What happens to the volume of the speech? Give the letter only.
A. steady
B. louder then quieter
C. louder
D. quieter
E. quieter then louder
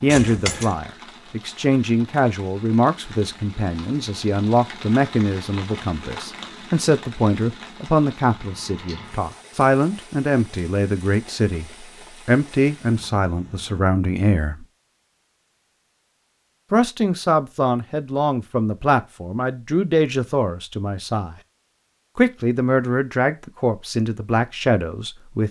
A.